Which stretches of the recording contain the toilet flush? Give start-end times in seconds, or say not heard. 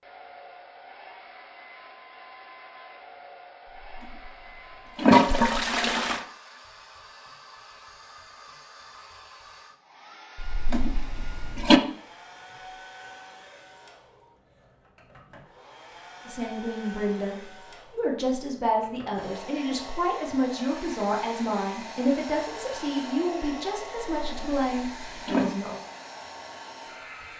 5.0-6.2, 10.4-11.8, 24.2-25.4.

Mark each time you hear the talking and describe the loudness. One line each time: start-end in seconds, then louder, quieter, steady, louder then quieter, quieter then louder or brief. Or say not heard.
16.2-25.8 steady.